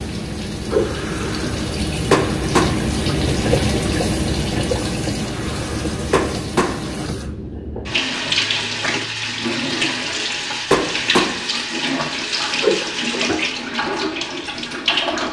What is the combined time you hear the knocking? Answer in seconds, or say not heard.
2 s.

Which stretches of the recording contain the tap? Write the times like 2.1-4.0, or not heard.
0.0-15.2.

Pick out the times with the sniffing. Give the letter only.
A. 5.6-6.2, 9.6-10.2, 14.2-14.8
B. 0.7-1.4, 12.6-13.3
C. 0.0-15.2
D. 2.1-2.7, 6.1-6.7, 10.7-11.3
B.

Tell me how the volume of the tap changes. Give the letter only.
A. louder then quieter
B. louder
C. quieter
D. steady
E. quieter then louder
D.